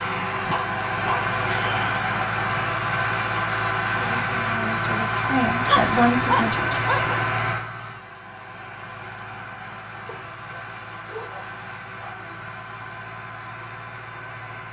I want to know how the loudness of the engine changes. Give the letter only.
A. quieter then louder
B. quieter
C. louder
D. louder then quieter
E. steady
B.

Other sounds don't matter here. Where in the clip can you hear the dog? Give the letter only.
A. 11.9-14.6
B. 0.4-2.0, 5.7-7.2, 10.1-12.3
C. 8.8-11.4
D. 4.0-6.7
B.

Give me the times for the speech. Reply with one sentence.
The speech can be heard from 4.0 to 6.7 s.